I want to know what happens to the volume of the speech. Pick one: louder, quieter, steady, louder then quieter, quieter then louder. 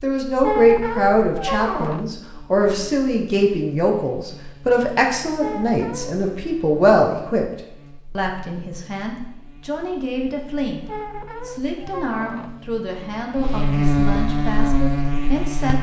quieter.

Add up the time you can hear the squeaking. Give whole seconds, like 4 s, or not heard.
4 s.